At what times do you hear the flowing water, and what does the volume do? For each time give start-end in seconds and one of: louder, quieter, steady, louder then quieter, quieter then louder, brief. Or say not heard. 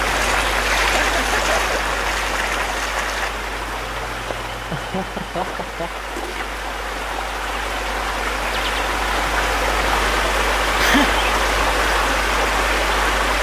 0.0-13.3 quieter then louder.